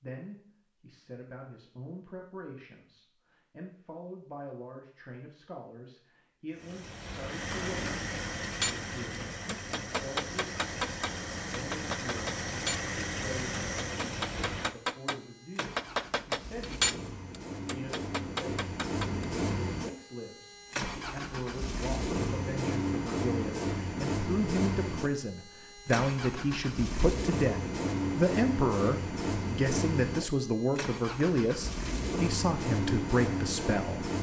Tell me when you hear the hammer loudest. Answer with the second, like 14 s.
17 s.